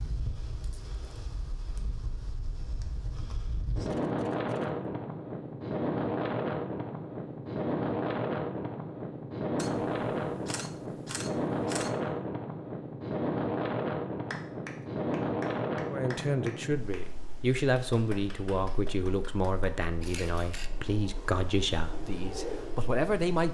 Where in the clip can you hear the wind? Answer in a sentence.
You can hear the wind from 0.0 to 23.4 s.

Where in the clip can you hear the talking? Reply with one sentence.
You can hear the talking from 15.9 to 23.4 s.